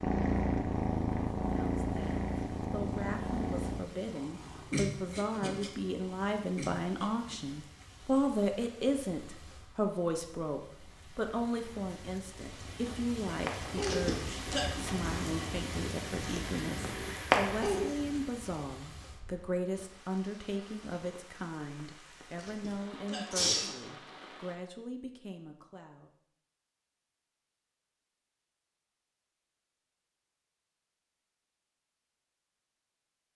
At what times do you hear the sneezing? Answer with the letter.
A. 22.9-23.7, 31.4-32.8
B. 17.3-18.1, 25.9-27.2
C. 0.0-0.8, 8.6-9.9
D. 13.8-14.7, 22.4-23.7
D.